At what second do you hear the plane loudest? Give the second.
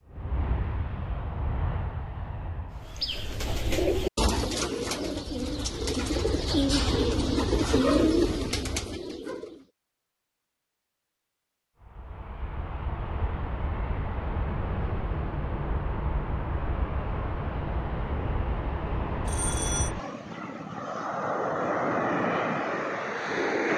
22 s.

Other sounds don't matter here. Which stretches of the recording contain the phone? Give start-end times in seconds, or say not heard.
19.2-19.9.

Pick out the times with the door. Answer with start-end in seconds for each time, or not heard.
not heard.